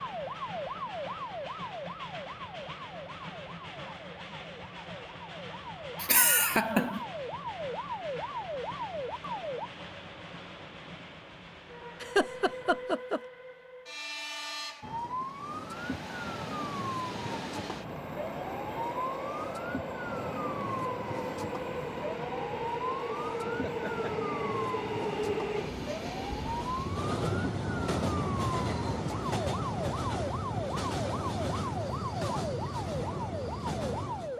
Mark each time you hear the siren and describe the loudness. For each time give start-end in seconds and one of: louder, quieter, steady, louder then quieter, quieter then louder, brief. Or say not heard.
0.0-9.7 quieter then louder
14.8-34.3 steady.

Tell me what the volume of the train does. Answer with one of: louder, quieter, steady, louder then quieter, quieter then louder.
louder.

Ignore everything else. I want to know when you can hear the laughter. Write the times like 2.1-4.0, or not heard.
6.0-7.0, 12.0-13.2, 23.4-24.1.